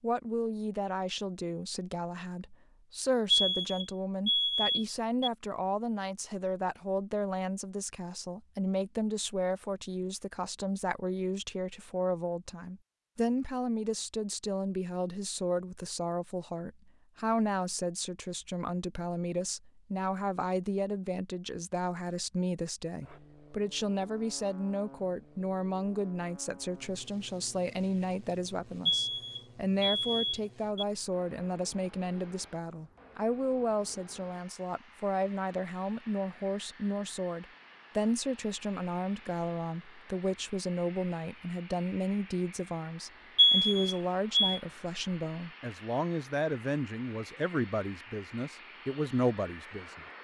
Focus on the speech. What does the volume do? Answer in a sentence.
The loudness of the speech stays about the same.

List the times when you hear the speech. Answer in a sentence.
You can hear the speech from 0.0 to 50.0 s.